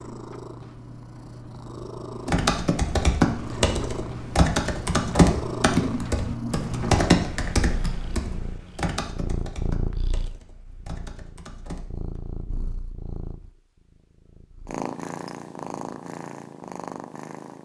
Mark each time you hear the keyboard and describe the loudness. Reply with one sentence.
The keyboard can be heard from 2.2 to 12.2 s, getting quieter.